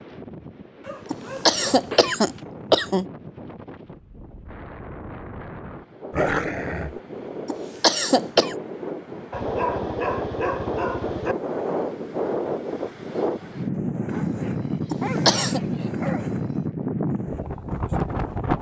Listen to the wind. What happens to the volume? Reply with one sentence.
The loudness of the wind goes up.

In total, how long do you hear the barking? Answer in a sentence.
You can hear the barking for 7 seconds altogether.